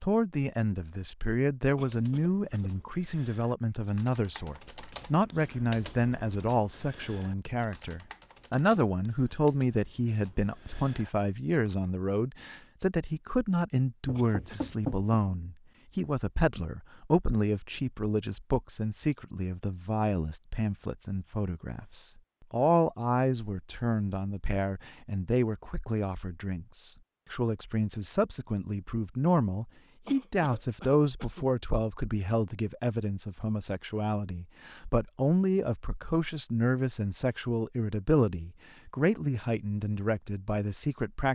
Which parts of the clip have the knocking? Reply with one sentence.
The knocking can be heard from 14.1 to 15.1 s.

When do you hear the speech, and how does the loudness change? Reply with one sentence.
The speech can be heard from 0.0 to 41.3 s, at a steady volume.